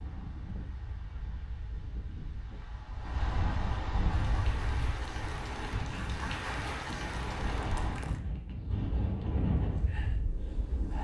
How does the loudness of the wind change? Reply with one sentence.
The loudness of the wind goes up.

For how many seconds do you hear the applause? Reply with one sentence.
You can hear the applause for 4 seconds altogether.